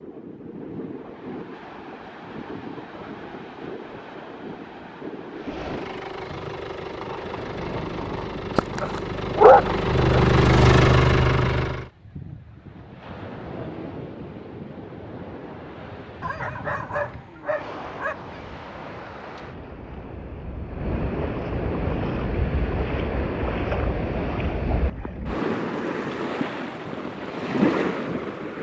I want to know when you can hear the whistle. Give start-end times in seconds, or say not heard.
not heard.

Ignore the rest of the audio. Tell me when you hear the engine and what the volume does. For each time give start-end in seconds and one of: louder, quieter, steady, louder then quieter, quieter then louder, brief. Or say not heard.
5.3-11.9 louder.